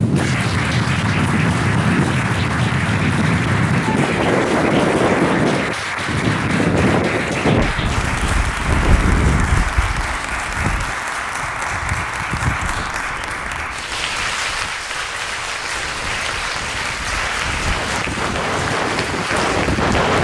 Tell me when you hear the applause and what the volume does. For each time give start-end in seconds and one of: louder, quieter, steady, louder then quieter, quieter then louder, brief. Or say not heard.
0.0-20.1 steady.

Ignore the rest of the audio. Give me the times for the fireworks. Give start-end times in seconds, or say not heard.
not heard.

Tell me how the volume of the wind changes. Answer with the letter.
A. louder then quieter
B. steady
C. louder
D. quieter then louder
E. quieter
D.